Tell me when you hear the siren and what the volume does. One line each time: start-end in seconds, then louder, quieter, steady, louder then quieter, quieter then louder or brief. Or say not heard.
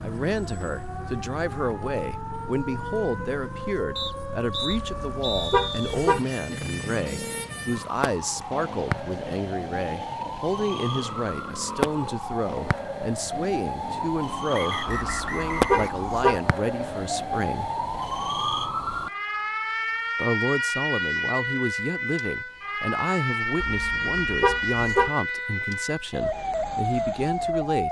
0.0-27.8 louder.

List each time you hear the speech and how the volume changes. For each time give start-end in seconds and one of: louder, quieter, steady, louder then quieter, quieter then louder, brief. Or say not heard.
0.0-17.7 steady
20.1-27.8 steady.